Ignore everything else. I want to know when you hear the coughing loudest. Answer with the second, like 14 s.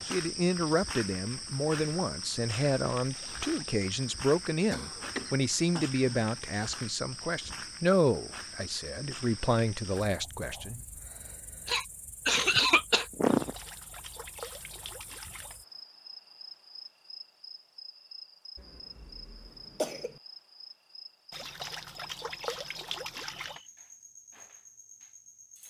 13 s.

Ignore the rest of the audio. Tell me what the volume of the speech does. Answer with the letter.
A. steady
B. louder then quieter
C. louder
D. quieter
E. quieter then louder
A.